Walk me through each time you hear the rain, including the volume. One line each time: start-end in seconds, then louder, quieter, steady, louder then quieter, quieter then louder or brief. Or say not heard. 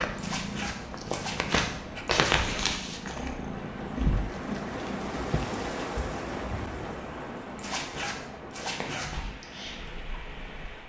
0.0-10.8 louder then quieter.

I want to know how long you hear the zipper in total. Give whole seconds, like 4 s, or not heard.
4 s.